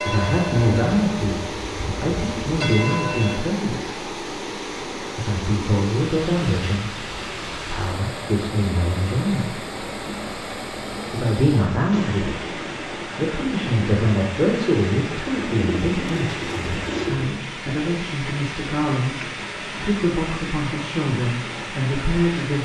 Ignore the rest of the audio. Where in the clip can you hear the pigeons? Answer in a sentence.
The pigeons can be heard from 15.3 to 17.4 s.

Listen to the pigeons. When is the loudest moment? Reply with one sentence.
The loudest moment of the pigeons is at 17 seconds.